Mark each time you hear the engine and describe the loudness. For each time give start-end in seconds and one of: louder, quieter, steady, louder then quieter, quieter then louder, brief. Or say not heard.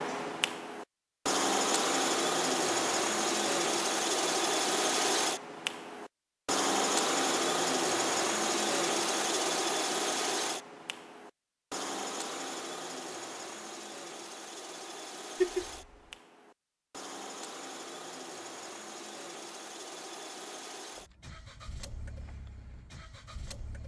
0.0-23.8 quieter.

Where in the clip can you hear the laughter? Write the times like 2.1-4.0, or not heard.
15.4-15.8.